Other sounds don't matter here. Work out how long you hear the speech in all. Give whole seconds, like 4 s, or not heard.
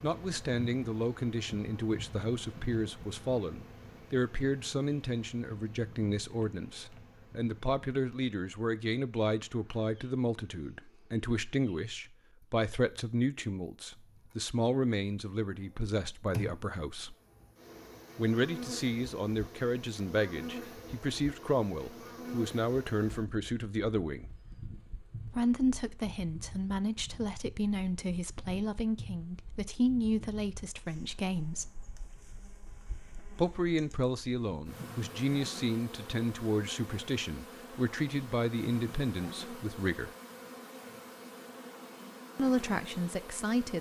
38 s.